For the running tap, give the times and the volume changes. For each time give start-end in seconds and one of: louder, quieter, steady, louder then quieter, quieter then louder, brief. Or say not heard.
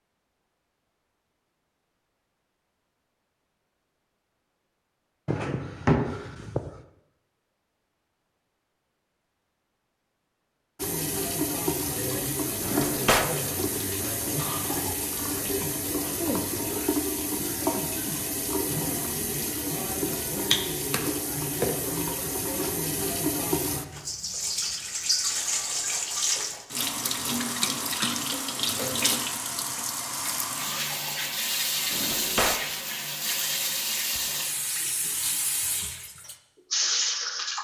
10.8-37.6 steady.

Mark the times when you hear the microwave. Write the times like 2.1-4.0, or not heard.
not heard.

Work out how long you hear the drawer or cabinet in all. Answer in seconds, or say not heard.
3 s.